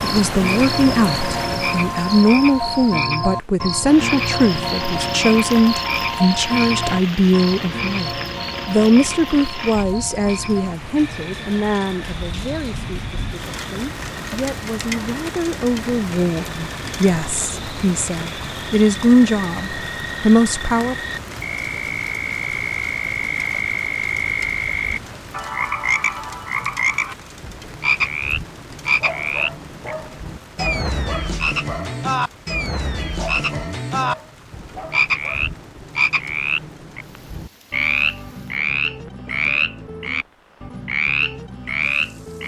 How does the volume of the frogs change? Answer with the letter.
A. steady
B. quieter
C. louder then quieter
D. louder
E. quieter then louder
E.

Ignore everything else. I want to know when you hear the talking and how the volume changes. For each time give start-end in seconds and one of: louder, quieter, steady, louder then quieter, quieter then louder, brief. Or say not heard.
0.0-20.9 quieter then louder.